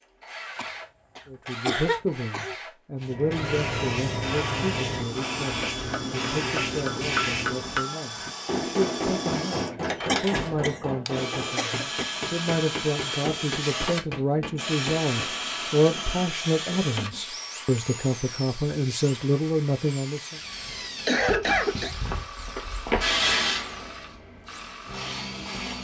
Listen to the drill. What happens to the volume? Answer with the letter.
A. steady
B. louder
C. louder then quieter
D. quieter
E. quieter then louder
C.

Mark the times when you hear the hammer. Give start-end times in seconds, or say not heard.
5.5-15.3.